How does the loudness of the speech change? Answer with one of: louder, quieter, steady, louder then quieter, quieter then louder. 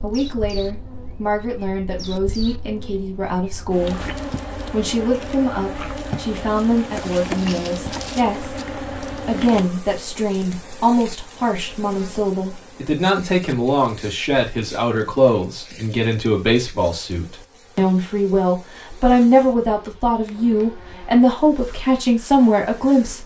louder.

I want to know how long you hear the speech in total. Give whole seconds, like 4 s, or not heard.
23 s.